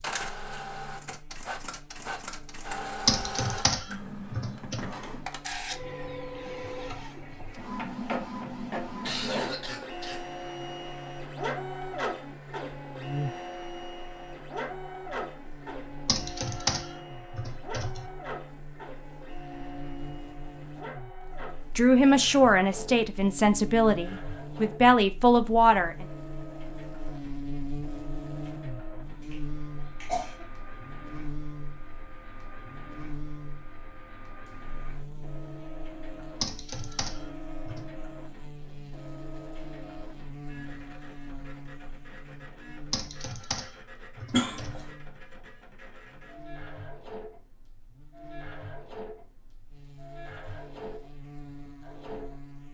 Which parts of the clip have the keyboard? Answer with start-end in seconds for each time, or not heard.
3.0-4.8, 16.1-18.1, 36.4-37.9, 42.9-44.8.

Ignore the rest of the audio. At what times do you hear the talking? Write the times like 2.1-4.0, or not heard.
21.8-26.1.